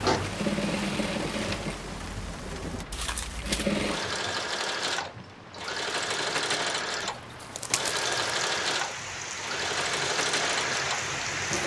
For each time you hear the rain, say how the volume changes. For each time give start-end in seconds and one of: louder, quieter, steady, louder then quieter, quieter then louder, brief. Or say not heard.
0.0-11.6 quieter then louder.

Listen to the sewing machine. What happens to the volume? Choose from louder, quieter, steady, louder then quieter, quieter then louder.
steady.